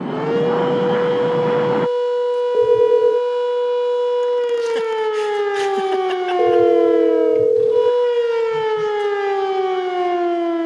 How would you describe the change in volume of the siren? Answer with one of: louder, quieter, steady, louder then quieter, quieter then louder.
steady.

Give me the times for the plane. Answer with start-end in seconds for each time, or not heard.
0.0-1.9.